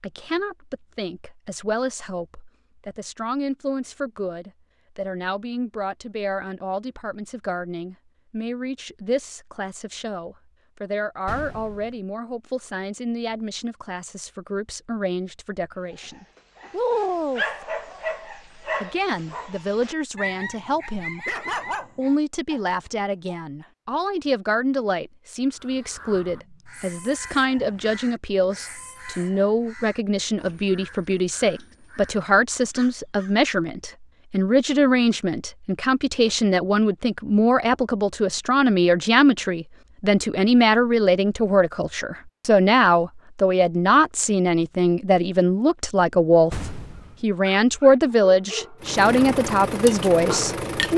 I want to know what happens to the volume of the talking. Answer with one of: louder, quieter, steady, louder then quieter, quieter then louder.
louder.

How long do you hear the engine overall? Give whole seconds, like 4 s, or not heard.
2 s.